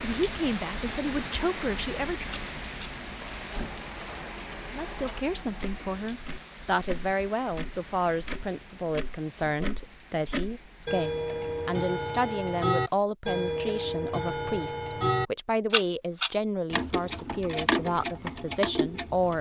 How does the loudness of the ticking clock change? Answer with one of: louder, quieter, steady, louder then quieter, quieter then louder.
louder.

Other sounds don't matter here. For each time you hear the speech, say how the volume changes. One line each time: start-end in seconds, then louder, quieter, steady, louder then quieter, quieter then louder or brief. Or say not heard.
0.0-2.4 brief
4.7-19.3 steady.